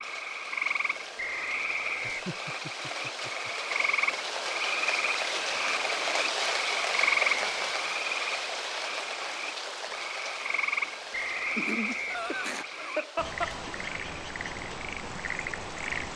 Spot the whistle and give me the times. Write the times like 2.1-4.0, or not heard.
1.1-2.3, 7.2-7.8, 11.1-12.7.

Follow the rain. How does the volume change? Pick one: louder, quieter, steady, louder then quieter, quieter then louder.
louder then quieter.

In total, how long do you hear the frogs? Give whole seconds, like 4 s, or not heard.
16 s.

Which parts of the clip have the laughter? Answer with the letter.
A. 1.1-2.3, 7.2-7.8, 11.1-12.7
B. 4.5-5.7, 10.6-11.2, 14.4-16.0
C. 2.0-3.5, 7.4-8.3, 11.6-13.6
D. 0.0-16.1
C.